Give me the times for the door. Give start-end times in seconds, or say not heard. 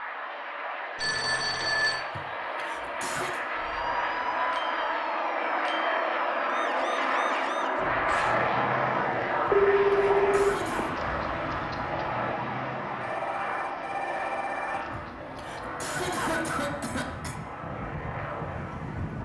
not heard.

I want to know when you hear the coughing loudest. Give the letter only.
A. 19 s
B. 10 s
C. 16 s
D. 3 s
C.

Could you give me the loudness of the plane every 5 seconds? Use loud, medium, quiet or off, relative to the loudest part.
medium, loud, medium, medium.